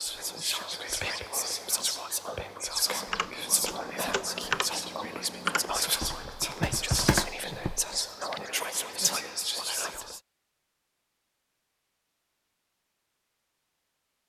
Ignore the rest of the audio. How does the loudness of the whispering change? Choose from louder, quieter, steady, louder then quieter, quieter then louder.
steady.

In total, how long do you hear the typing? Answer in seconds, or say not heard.
6 s.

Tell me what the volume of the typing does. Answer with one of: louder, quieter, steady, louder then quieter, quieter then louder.
louder then quieter.